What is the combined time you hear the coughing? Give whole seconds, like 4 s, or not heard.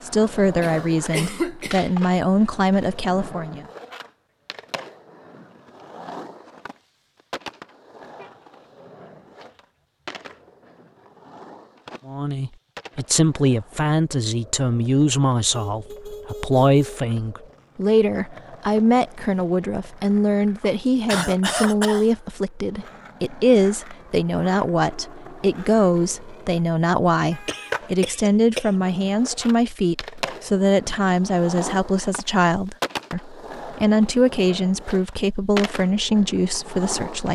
4 s.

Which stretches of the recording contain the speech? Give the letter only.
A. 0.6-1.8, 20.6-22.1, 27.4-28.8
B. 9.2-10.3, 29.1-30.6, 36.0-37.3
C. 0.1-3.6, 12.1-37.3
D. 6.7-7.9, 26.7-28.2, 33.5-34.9
C.